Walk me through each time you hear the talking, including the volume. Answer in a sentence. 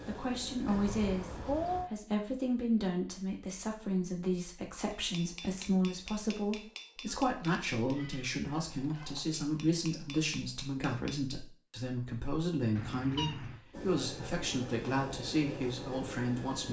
The talking can be heard from 0.1 to 16.6 s, at a steady volume.